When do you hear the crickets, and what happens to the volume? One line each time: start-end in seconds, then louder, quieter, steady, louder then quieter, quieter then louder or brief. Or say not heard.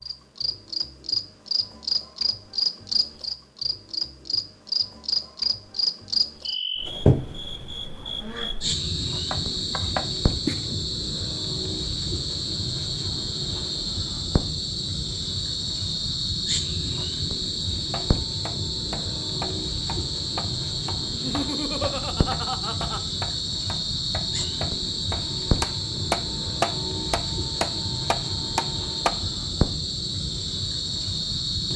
0.0-31.7 steady.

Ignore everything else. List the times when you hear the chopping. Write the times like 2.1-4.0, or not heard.
9.3-10.8, 17.8-29.1.